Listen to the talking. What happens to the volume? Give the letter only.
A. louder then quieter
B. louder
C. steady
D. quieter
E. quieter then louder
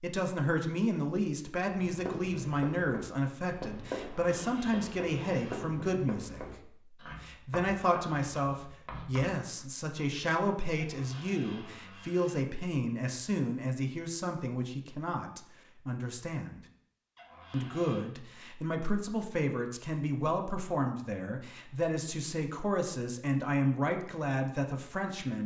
C.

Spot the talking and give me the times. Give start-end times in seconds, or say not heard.
0.0-16.6, 17.5-25.4.